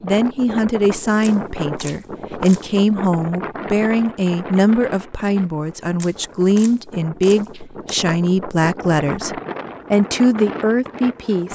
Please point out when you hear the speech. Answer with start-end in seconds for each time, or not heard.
0.0-11.5.